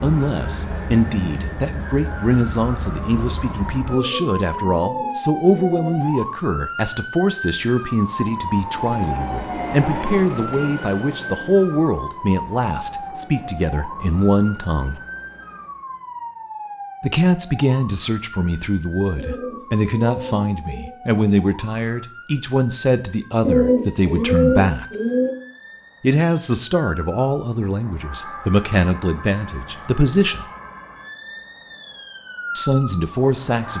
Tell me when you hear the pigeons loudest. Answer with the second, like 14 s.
24 s.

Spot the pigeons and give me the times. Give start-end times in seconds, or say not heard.
3.9-6.1, 19.1-20.9, 23.4-25.4.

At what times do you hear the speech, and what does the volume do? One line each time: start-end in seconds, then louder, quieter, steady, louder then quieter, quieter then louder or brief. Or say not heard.
0.0-15.0 steady
17.0-24.9 steady
26.0-30.4 steady
32.5-33.7 brief.